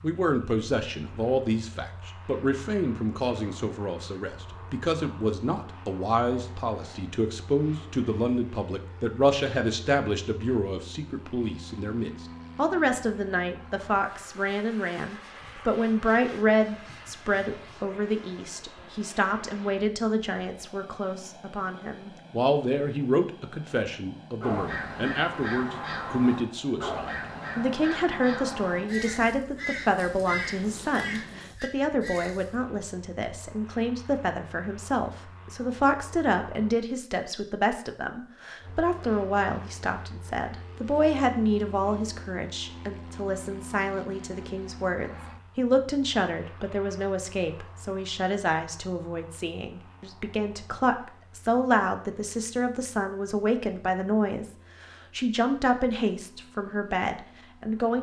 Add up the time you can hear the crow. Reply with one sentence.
You can hear the crow for 8 seconds altogether.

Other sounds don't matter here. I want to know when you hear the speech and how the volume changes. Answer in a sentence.
The speech can be heard from 0.0 to 57.9 s, at a steady volume.